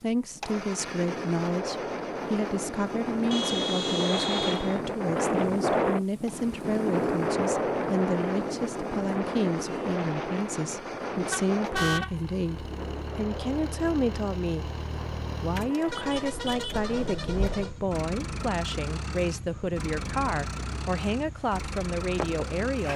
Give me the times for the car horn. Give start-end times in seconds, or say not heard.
3.3-4.8, 11.1-12.1, 15.8-17.8.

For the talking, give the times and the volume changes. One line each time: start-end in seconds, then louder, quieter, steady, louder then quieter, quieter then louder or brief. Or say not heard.
0.0-22.9 steady.